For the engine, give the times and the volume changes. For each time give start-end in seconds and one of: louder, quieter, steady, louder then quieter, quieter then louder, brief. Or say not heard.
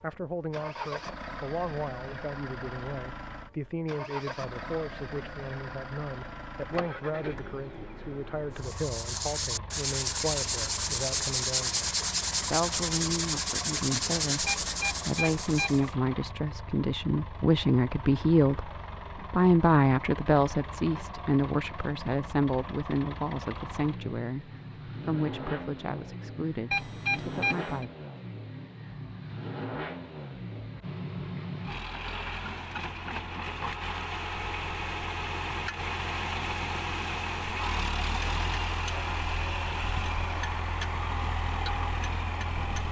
0.0-42.8 louder.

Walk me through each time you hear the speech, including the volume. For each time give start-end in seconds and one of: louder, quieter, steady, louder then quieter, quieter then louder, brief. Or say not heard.
0.0-27.9 louder then quieter.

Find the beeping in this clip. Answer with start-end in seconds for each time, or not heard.
14.4-15.9, 26.7-27.9.